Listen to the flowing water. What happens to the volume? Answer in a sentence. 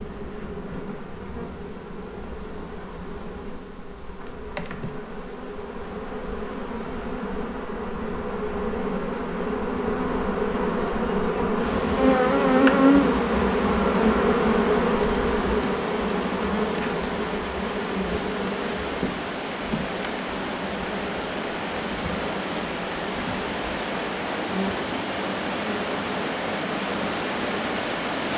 The loudness of the flowing water goes up.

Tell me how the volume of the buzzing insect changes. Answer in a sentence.
The volume of the buzzing insect goes up, then down.